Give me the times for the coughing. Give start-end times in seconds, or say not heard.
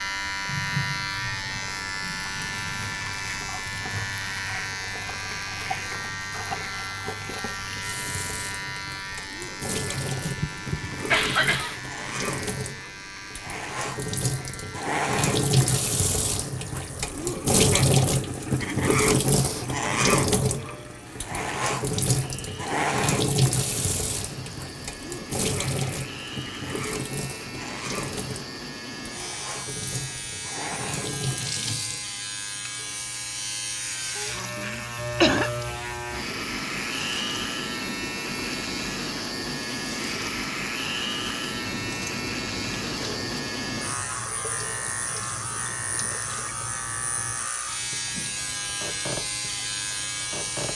10.2-11.8, 34.4-35.5.